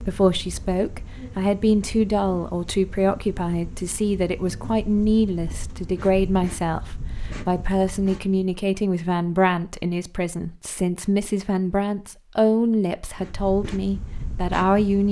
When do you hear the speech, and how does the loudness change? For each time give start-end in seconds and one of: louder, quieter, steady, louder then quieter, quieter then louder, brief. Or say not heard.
0.0-15.0 steady.